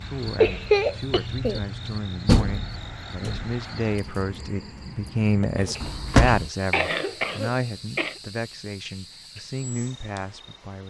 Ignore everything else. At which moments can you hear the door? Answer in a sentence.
You can hear the door from 2.2 to 3.5 s and from 5.8 to 6.5 s.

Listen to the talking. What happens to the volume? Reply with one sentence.
The volume of the talking goes up, then down.